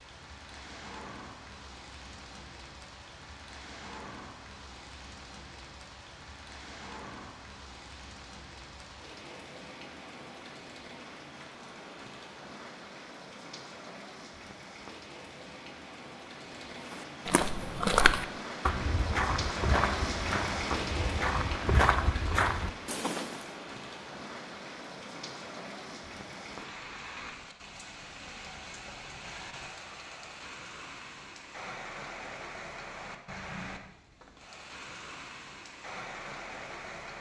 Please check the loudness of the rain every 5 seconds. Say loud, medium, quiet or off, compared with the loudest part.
medium, medium, medium, loud, loud, medium, medium, medium.